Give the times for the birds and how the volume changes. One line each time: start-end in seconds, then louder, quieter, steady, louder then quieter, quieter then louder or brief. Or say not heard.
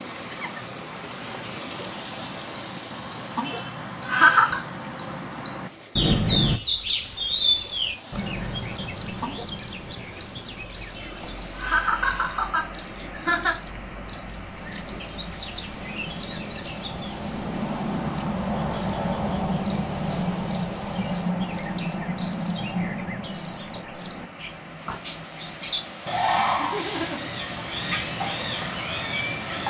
0.0-29.6 steady.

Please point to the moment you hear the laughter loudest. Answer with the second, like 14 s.
4 s.